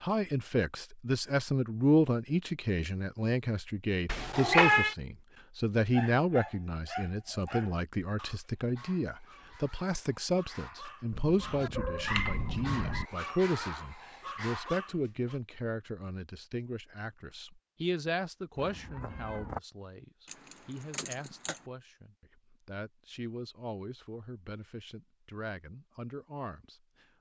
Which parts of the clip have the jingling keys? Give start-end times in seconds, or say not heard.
7.2-7.7, 20.2-21.6.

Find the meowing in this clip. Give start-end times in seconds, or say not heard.
4.0-5.0, 11.1-13.1, 18.6-19.6.